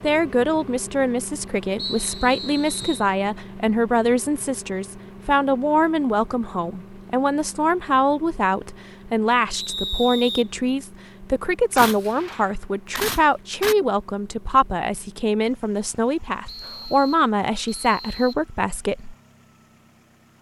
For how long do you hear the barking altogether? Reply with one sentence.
You can't hear the barking here.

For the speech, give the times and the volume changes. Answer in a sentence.
You can hear the speech from 0.0 to 19.1 s, at a steady volume.